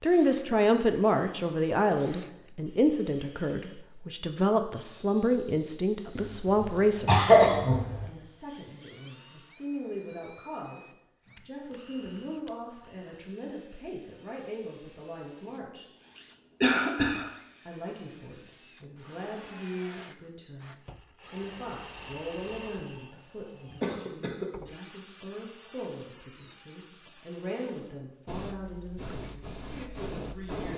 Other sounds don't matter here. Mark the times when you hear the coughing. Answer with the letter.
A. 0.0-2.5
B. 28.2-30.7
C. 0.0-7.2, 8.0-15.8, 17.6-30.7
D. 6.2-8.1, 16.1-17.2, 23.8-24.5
D.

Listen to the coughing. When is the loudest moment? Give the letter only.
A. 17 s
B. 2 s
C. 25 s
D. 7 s
D.